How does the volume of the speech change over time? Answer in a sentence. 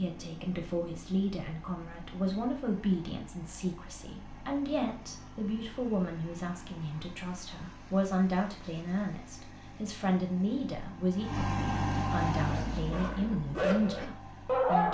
The volume of the speech stays about the same.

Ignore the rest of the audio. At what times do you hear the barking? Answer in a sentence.
The barking can be heard from 12.3 to 14.8 s.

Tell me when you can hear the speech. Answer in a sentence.
You can hear the speech from 0.0 to 14.8 s.